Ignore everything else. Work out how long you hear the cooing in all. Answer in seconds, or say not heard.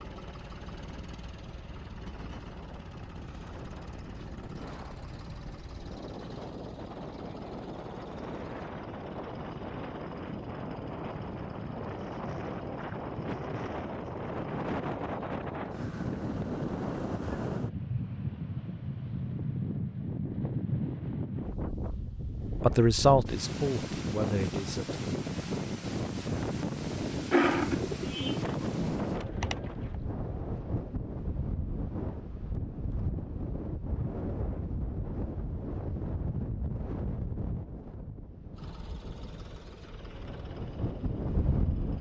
3 s.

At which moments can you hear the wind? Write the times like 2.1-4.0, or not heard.
0.0-41.9.